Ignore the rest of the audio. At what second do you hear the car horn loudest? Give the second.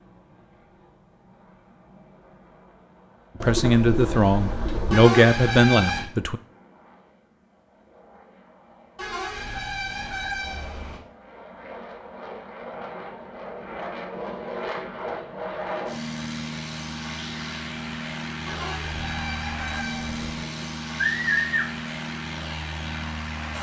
6 s.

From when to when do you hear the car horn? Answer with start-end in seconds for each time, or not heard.
4.9-6.0, 8.9-11.0, 18.4-20.4.